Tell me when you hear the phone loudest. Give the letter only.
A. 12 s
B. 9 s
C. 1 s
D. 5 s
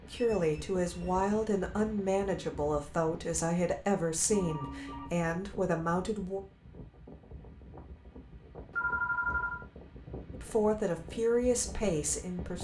B.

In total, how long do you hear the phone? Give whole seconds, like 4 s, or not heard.
3 s.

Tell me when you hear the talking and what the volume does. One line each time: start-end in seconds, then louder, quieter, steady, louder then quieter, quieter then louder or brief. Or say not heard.
0.1-6.4 steady
10.3-12.5 brief.